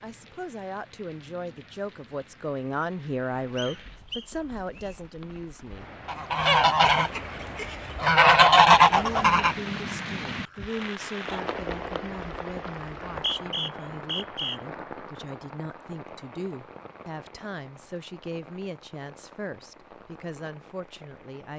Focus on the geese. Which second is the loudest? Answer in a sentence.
The volume of the geese peaks at 9 seconds.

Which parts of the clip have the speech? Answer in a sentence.
The speech can be heard from 0.0 to 5.8 s and from 8.8 to 21.5 s.